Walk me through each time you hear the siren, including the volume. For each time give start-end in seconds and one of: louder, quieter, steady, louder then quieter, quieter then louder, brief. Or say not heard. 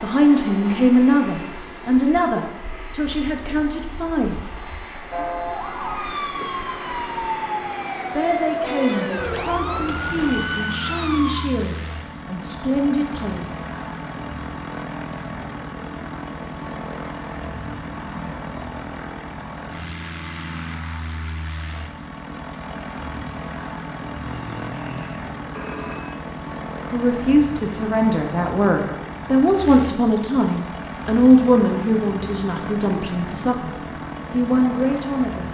5.1-11.4 steady.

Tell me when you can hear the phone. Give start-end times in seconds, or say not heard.
9.2-10.4, 24.2-26.3.